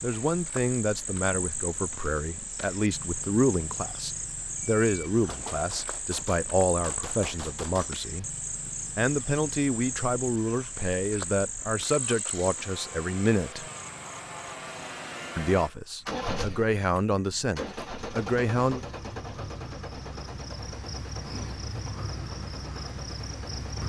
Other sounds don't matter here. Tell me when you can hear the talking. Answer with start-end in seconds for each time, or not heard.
0.0-13.7, 15.3-18.8.